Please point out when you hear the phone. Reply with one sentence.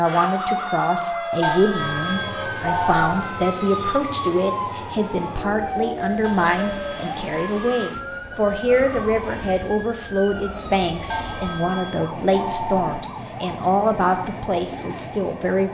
The phone can be heard from 1.4 to 3.0 s, from 6.2 to 7.2 s and from 11.1 to 12.8 s.